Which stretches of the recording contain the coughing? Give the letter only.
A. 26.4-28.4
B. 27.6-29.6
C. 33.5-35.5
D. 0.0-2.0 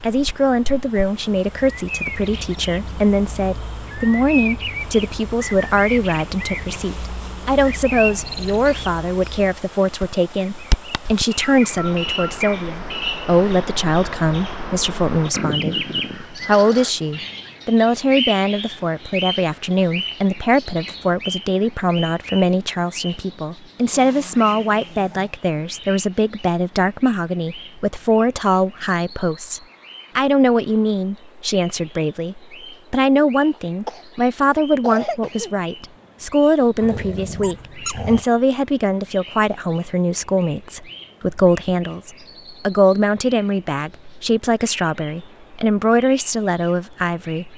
C.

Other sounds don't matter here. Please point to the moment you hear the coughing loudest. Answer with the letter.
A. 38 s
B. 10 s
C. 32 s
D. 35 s
D.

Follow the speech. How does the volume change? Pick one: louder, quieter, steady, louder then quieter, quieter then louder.
steady.